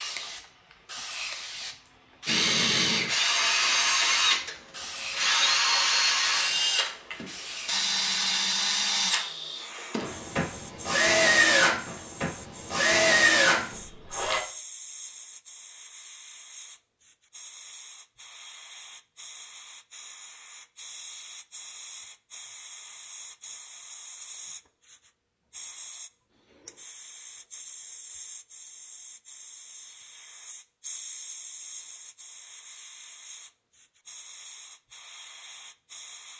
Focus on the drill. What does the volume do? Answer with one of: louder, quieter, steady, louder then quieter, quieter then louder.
steady.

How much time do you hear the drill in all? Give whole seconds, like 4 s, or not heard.
12 s.